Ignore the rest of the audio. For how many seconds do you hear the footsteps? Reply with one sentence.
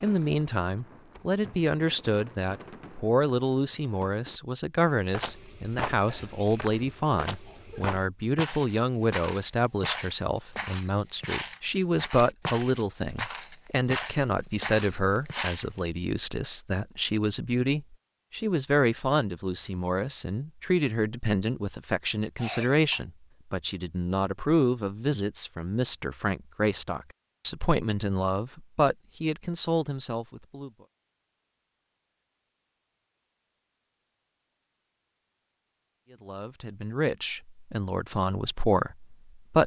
You can hear the footsteps for 11 seconds altogether.